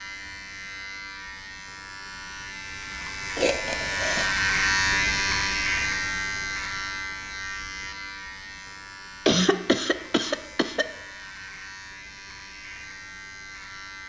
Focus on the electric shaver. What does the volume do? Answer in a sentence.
The volume of the electric shaver goes up, then down.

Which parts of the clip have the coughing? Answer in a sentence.
You can hear the coughing from 3.4 to 4.3 s and from 9.2 to 10.8 s.